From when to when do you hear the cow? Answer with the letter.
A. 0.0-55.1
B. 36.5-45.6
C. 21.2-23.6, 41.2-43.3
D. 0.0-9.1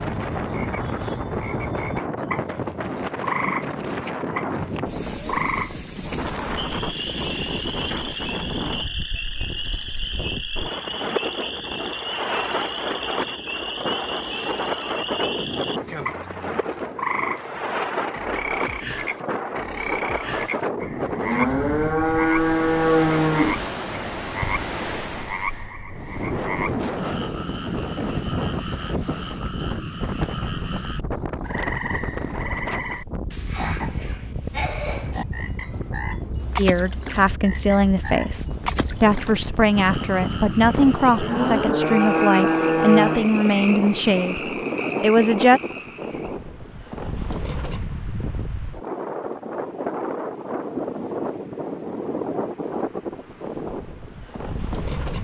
C.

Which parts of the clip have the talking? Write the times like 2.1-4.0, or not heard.
36.5-45.6.